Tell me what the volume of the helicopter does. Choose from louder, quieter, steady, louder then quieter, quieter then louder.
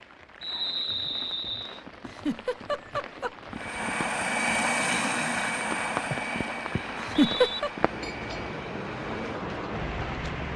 quieter.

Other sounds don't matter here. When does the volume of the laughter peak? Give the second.
7 s.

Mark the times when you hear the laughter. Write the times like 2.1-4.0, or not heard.
2.0-3.3, 7.0-7.7.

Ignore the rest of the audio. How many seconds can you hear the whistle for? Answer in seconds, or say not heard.
2 s.